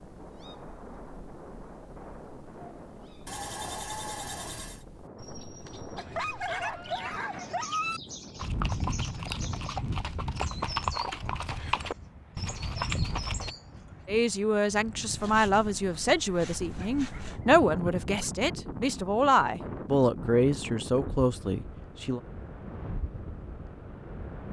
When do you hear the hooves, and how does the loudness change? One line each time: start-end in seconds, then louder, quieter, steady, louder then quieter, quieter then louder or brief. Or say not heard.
8.3-13.6 steady.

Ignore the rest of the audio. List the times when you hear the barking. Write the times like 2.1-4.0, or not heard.
6.0-8.0, 16.8-18.5.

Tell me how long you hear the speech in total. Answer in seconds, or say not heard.
8 s.